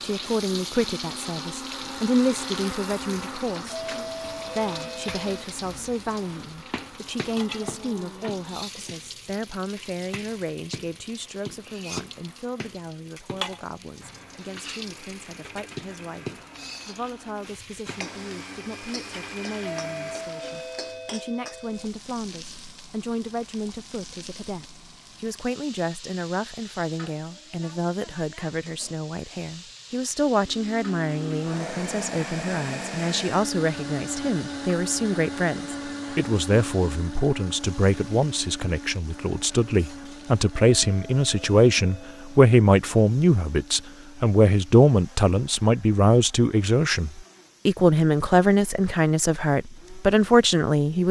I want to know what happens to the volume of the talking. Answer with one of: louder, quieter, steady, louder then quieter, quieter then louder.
quieter then louder.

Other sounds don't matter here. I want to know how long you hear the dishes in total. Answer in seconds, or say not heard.
not heard.